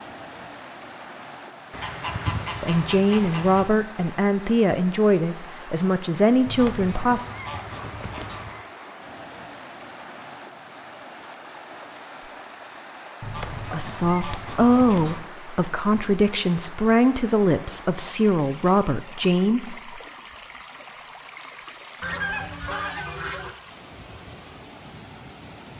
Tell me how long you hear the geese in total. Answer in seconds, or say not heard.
8 s.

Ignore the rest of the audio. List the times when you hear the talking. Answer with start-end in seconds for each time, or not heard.
2.6-7.2, 13.7-20.0.